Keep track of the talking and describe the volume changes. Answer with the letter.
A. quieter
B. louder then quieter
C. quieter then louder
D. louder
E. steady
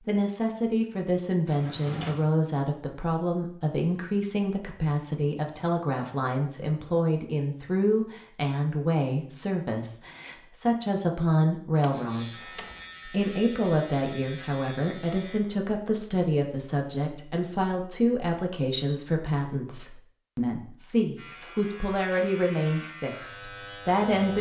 E.